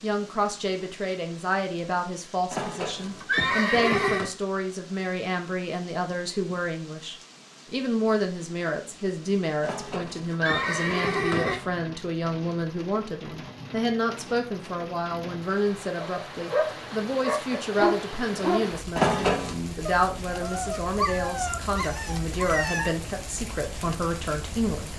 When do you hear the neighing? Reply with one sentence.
The neighing can be heard from 2.5 to 4.3 s, from 9.6 to 11.6 s and from 18.9 to 19.6 s.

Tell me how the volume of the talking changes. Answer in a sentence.
The volume of the talking stays about the same.